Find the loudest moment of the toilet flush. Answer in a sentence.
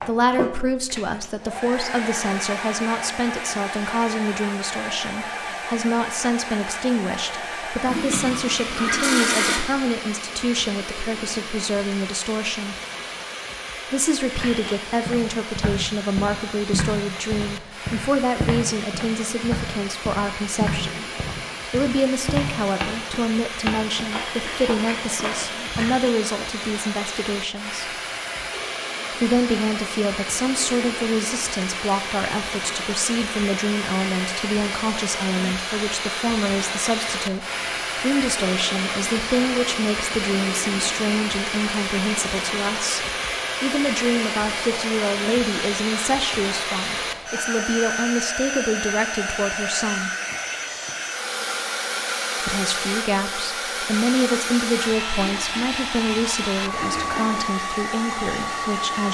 The volume of the toilet flush peaks at 9 seconds.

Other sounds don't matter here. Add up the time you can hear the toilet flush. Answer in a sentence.
You can hear the toilet flush for 4 seconds altogether.